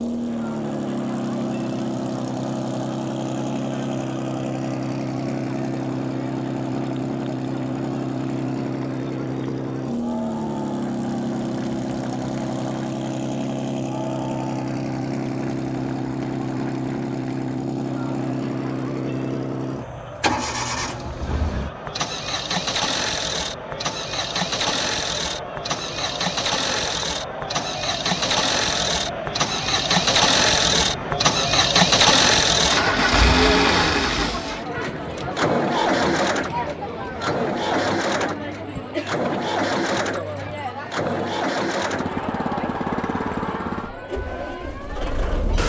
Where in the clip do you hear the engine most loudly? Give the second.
32 s.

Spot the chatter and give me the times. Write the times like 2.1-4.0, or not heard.
0.0-45.6.